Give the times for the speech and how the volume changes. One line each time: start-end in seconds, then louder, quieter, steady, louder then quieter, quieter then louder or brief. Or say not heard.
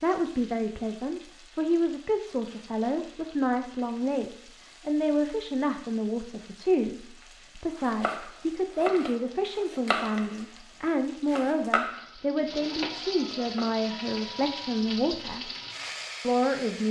0.0-15.5 steady
16.2-16.8 brief.